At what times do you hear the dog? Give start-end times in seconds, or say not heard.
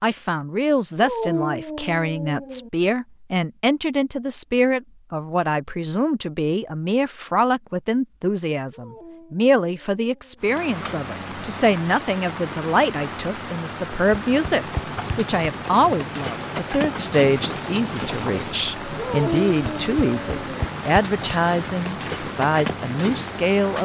0.9-2.7, 8.7-10.4, 18.9-20.6.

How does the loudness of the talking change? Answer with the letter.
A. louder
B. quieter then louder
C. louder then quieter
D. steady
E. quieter
D.